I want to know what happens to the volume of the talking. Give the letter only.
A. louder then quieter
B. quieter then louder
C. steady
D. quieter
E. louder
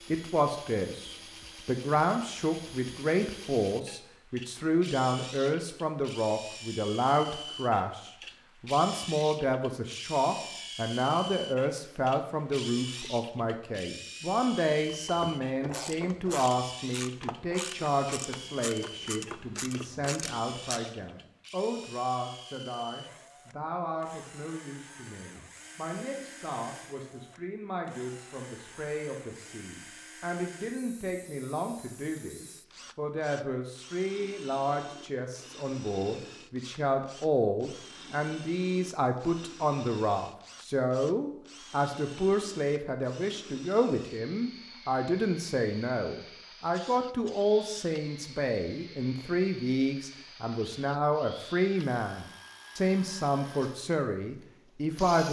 B.